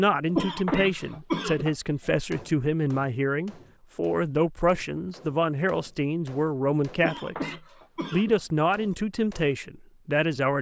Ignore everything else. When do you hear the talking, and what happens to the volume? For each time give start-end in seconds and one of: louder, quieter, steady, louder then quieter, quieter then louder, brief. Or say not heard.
0.0-10.5 steady.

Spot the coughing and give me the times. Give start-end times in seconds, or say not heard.
0.3-1.8, 7.0-8.4.